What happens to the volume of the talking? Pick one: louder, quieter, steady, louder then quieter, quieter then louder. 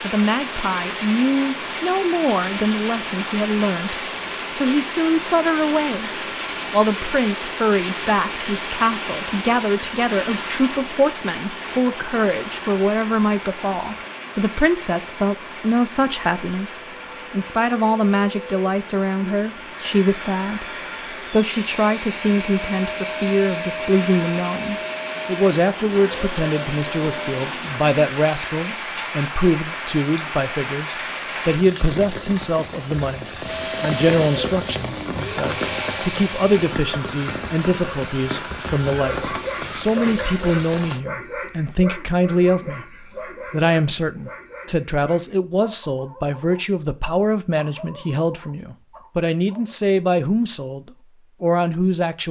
steady.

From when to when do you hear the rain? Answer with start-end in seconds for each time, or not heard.
0.0-41.0.